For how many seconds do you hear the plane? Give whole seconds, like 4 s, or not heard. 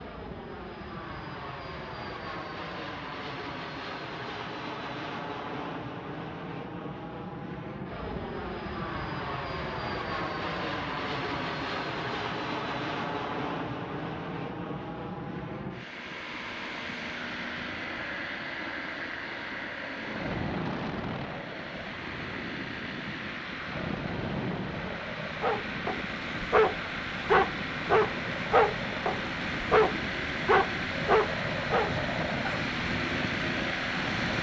34 s.